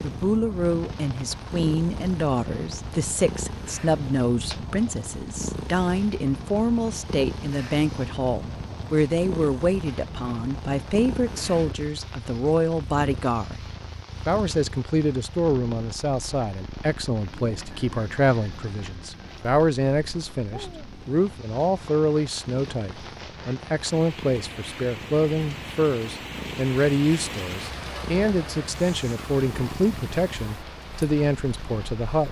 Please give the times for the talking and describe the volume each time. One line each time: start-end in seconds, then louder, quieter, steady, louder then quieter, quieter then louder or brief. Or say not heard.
0.0-13.7 steady
14.2-32.2 steady.